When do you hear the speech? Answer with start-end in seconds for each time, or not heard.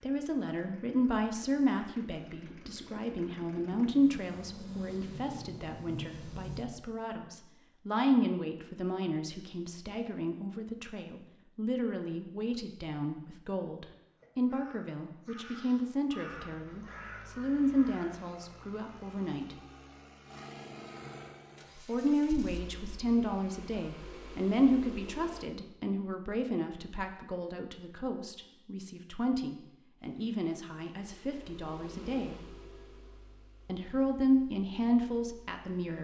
0.0-19.6, 21.9-32.4, 33.6-35.9.